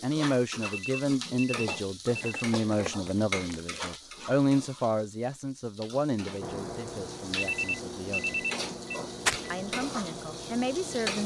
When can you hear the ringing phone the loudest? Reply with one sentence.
The volume of the ringing phone peaks at 8 seconds.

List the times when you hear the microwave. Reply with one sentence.
You can hear the microwave from 6.4 to 11.2 s.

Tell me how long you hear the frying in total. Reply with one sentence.
You can hear the frying for 11 seconds altogether.